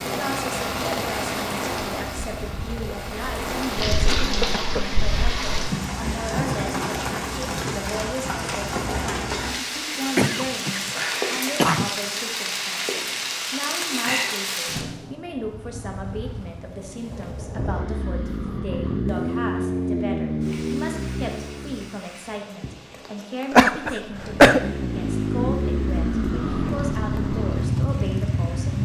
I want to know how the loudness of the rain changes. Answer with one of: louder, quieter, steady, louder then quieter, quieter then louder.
quieter.